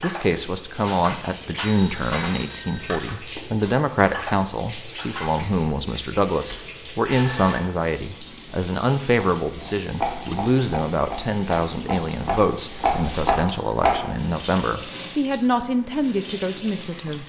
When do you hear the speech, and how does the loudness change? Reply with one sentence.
You can hear the speech from 0.0 to 17.2 s, at a steady volume.